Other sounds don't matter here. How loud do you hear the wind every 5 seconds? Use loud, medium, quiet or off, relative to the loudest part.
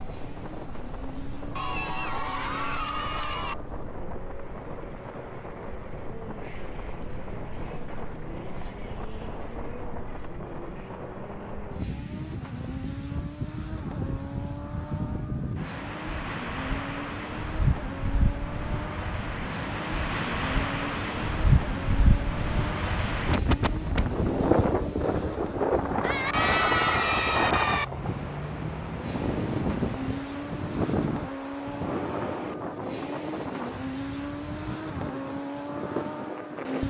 quiet, quiet, medium, medium, loud, loud, medium, medium.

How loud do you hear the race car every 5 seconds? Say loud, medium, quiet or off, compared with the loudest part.
medium, medium, medium, medium, loud, loud, loud, loud.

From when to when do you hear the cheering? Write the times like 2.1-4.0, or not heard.
1.6-3.5, 26.0-27.9.